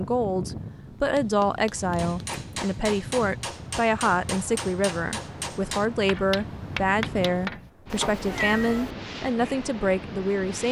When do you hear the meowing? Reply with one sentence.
You can hear the meowing from 1.1 to 2.0 s and from 7.9 to 8.9 s.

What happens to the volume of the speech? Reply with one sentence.
The volume of the speech stays about the same.